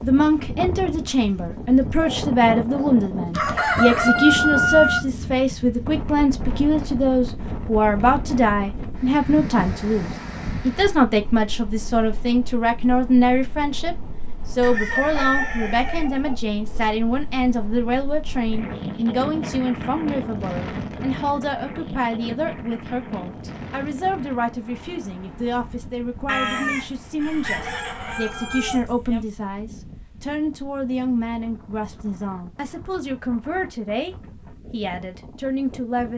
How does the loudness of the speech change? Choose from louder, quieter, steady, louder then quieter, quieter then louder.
quieter.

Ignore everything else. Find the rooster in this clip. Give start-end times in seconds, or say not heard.
3.4-5.0, 14.6-16.1, 26.2-29.2.